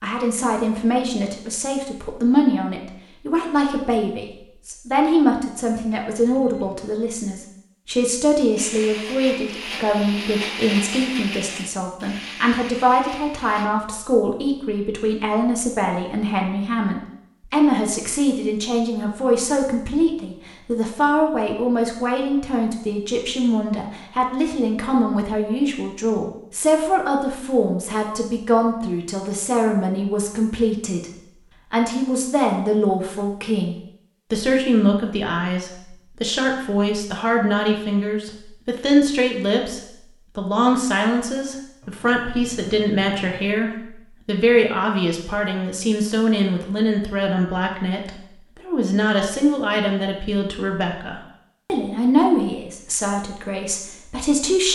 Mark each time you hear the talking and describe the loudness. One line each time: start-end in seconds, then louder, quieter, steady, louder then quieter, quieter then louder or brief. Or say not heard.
0.0-31.1 steady
31.7-54.7 steady.